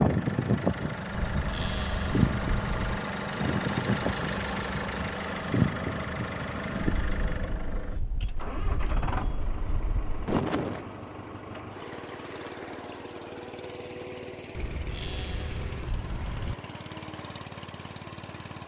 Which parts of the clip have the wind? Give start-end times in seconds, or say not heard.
0.0-10.8.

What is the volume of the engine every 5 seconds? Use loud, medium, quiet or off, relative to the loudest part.
loud, loud, medium, medium.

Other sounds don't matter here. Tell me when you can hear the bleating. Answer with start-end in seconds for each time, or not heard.
1.1-3.0, 14.6-16.6.